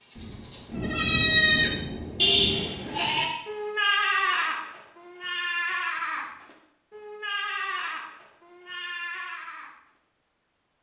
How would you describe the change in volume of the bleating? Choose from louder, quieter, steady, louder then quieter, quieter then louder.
quieter.